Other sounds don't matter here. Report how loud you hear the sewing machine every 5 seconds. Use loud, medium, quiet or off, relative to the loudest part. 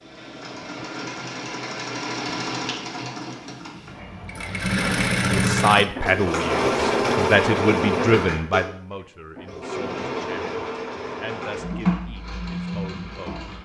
medium, loud, medium.